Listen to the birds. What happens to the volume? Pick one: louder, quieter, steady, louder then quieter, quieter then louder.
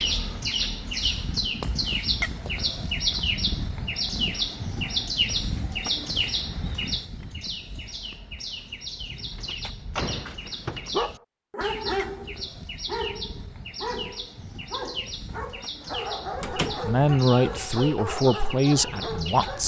quieter.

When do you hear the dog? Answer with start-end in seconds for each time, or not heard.
10.1-19.6.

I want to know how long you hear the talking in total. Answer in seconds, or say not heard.
3 s.